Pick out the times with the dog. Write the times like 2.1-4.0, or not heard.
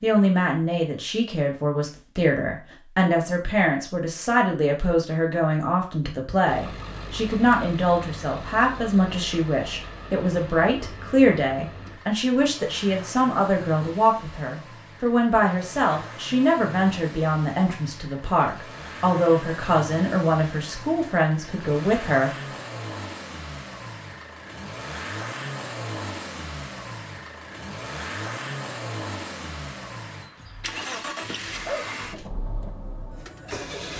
31.2-32.3.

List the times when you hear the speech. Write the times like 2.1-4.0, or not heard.
0.0-22.3.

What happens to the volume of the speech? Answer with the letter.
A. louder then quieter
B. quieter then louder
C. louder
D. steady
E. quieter
D.